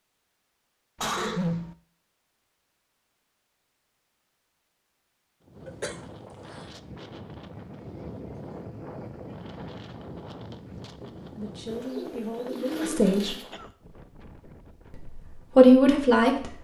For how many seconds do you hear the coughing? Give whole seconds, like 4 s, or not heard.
3 s.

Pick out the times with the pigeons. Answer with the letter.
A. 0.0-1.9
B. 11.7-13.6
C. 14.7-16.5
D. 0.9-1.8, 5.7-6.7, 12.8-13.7
B.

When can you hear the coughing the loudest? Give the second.
1 s.